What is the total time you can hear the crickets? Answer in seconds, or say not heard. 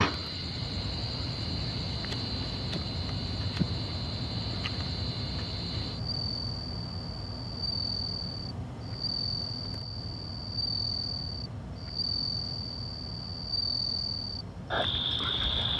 16 s.